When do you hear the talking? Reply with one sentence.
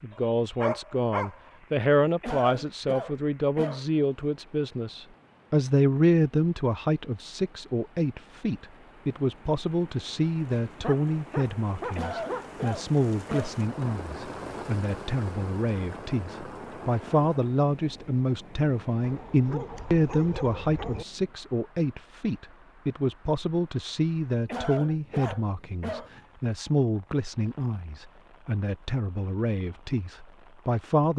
The talking can be heard from 0.0 to 31.1 s.